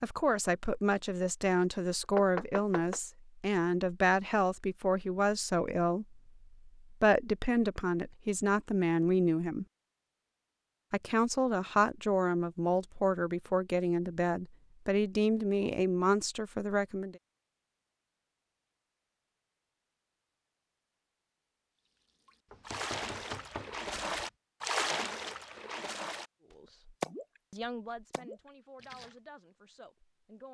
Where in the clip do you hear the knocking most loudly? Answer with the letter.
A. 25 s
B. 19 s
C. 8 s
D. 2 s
D.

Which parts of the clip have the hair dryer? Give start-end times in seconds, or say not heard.
not heard.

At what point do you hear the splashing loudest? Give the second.
25 s.